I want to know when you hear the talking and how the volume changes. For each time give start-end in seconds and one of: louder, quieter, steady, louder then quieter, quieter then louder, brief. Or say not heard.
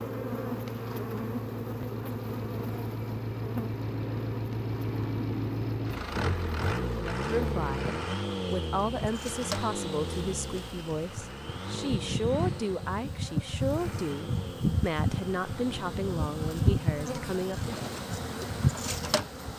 7.2-17.8 steady.